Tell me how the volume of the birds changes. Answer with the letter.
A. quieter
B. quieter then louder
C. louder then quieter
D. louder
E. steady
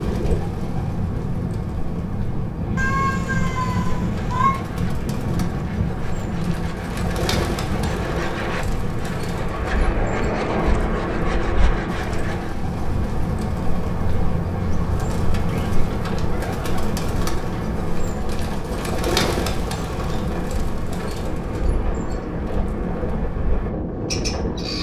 C.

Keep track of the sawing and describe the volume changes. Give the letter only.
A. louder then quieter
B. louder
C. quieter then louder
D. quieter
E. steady
B.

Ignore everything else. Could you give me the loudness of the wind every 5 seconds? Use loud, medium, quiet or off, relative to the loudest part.
loud, loud, medium, medium, loud.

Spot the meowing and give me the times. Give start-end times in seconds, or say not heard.
2.8-4.5.